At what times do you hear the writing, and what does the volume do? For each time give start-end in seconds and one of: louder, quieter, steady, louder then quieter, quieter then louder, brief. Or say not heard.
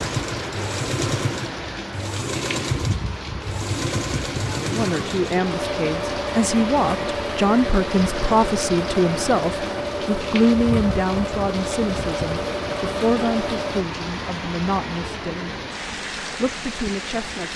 not heard.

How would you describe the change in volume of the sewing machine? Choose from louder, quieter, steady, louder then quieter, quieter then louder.
steady.